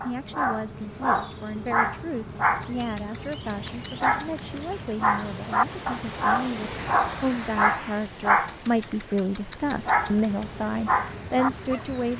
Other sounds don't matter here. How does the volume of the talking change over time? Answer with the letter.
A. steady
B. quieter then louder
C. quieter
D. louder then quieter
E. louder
E.